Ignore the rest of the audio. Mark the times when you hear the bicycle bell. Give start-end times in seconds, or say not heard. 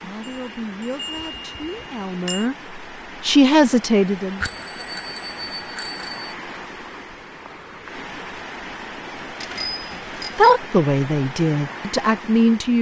0.2-2.5, 4.4-6.3, 9.4-10.5.